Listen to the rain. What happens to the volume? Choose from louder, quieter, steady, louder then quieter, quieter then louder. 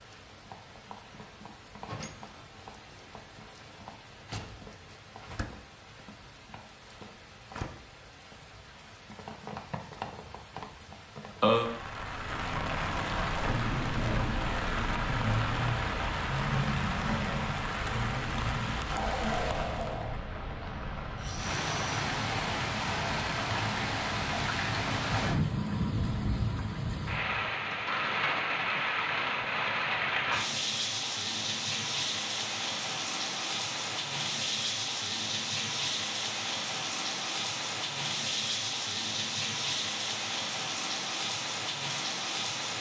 louder.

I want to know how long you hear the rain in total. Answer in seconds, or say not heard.
43 s.